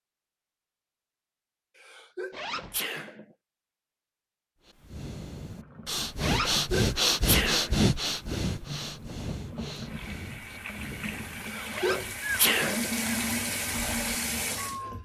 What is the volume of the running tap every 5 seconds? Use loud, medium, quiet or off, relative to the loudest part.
off, medium, loud.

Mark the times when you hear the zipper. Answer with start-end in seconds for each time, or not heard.
2.3-2.8, 6.2-6.7, 11.7-12.2.